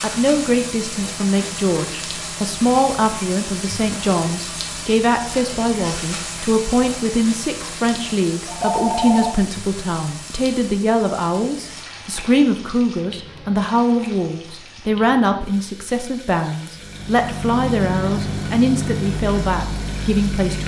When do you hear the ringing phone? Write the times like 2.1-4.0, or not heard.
8.4-9.3.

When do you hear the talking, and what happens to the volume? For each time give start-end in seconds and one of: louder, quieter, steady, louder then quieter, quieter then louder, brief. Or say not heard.
0.0-20.6 steady.